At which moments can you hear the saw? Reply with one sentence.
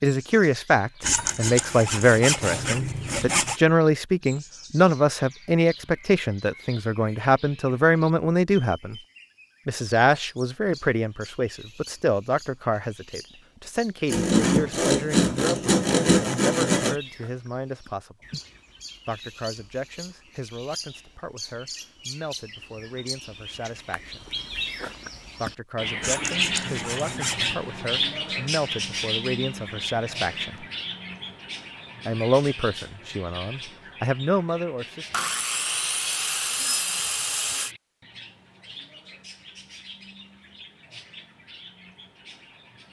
The saw can be heard from 1.0 to 3.6 s, from 14.1 to 16.9 s, from 26.0 to 27.6 s and from 35.1 to 37.8 s.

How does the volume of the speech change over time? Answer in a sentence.
The loudness of the speech goes down, then up.